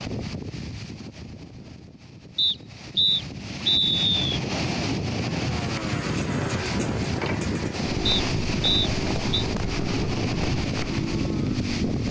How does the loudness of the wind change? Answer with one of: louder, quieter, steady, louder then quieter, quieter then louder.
louder.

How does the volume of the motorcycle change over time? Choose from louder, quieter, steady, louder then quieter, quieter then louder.
steady.